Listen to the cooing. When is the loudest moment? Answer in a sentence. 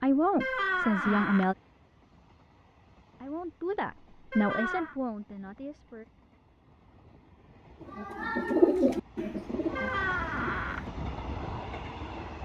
The volume of the cooing peaks at 9 seconds.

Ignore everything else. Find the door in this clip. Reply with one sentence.
The door can be heard from 0.4 to 1.5 s, from 4.3 to 5.0 s and from 9.8 to 10.8 s.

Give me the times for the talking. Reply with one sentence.
The talking can be heard from 0.0 to 1.6 s and from 3.2 to 6.0 s.